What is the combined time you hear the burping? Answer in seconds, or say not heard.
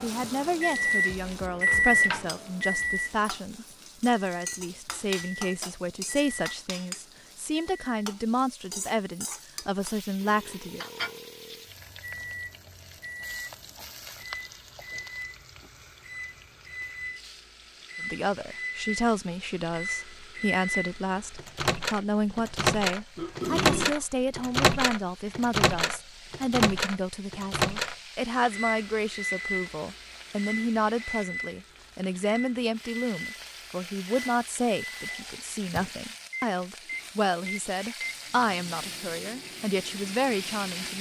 2 s.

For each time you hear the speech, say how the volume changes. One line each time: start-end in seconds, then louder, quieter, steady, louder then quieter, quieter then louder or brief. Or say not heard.
0.0-10.8 steady
18.0-40.9 steady.